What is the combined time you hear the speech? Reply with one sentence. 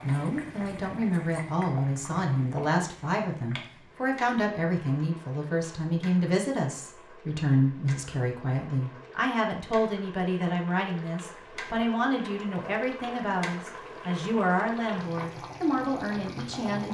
You can hear the speech for 17 seconds altogether.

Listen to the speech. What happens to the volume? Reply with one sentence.
The loudness of the speech stays about the same.